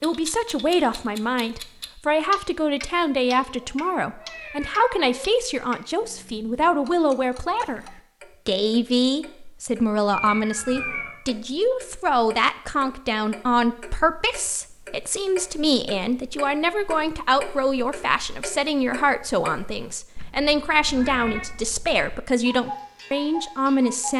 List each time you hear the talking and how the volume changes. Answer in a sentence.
The talking can be heard from 0.0 to 7.8 s, at a steady volume; and from 8.4 to 24.1 s, at a steady volume.